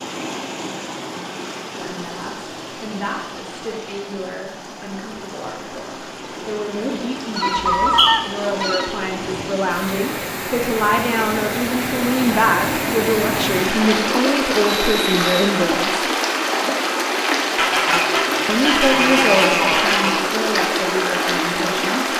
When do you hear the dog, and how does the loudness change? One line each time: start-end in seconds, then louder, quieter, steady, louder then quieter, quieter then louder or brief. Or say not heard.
not heard.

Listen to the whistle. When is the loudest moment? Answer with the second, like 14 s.
8 s.